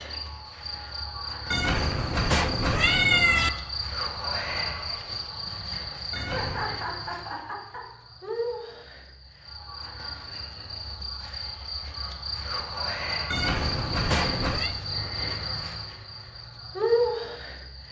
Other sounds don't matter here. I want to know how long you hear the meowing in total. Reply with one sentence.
You can hear the meowing for 4 seconds altogether.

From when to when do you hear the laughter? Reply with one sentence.
The laughter can be heard from 6.2 to 7.8 s.